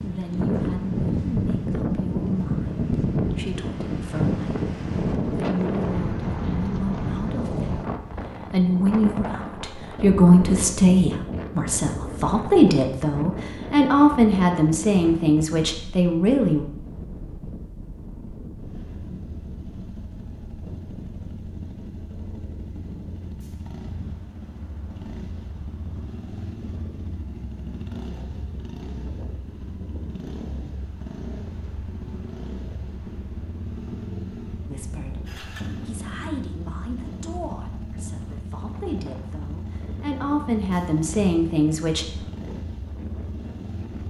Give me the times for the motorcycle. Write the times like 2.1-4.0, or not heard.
18.6-44.0.